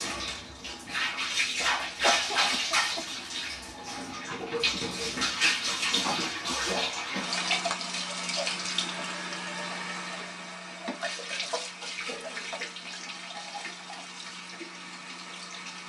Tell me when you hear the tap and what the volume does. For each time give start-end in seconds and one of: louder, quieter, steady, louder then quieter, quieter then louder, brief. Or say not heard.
0.0-15.8 quieter.